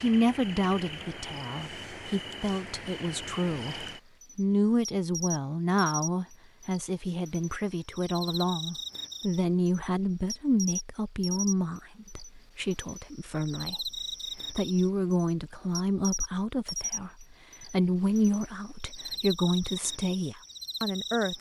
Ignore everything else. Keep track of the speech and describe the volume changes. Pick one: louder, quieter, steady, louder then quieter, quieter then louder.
steady.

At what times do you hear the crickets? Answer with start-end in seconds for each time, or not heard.
0.0-21.3.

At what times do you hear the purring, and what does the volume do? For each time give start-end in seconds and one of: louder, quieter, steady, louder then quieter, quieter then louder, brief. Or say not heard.
not heard.